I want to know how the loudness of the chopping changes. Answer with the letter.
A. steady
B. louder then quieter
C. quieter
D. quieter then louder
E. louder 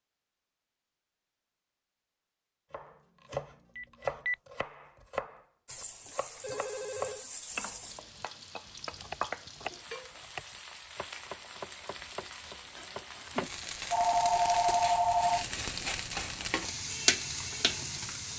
C.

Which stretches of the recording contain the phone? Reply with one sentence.
The phone can be heard from 3.8 to 4.3 s, from 6.4 to 7.2 s and from 13.9 to 15.4 s.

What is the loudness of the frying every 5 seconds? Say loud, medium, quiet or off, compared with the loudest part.
off, medium, medium, loud.